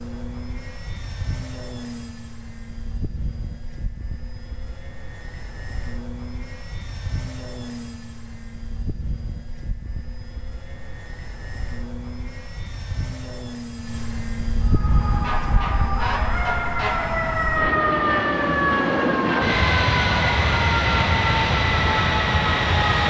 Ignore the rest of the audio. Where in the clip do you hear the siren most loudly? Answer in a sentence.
The loudest moment of the siren is at 18 seconds.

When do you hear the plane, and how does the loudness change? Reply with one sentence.
You can hear the plane from 0.0 to 23.0 s, getting louder.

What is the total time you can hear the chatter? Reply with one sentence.
You can't hear the chatter here.